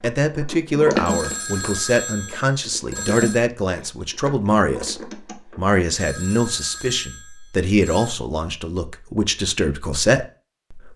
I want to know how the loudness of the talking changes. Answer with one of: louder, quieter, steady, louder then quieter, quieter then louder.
steady.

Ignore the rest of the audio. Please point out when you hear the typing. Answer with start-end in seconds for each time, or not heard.
0.2-5.7.